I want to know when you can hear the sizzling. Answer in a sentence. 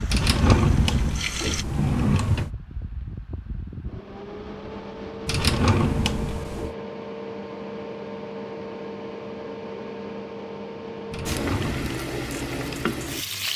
The sizzling can be heard from 0.0 to 1.6 s and from 11.2 to 13.5 s.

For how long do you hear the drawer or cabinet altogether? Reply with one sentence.
You can hear the drawer or cabinet for 5 seconds altogether.